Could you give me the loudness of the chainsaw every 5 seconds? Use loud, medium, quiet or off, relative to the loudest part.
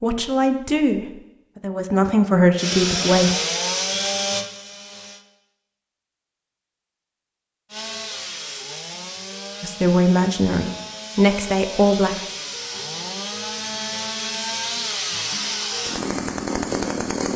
loud, medium, medium, loud.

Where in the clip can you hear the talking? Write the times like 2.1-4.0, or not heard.
0.0-3.4, 9.6-12.2.